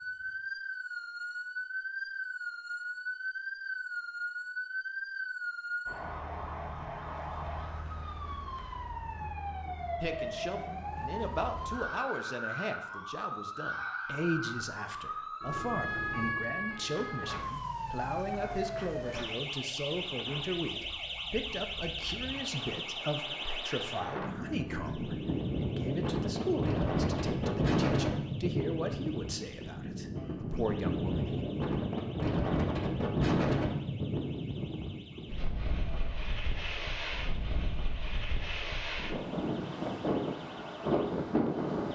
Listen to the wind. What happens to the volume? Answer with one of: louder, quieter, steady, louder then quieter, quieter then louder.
louder.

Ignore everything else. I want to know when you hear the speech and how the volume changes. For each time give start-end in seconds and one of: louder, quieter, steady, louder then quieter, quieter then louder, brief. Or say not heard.
10.0-31.4 steady.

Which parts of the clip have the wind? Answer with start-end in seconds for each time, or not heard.
17.0-41.9.